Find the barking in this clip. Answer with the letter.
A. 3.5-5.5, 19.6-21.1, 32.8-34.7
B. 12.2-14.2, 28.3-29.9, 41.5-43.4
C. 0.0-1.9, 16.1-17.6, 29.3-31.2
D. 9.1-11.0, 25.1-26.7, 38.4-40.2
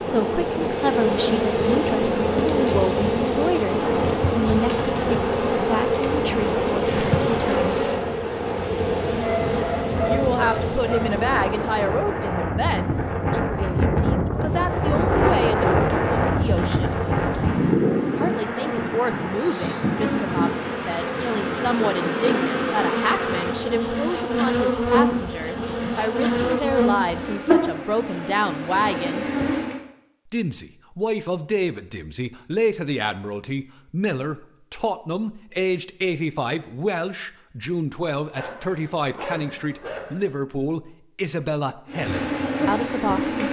D.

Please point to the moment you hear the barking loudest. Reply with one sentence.
The loudest moment of the barking is at 10 seconds.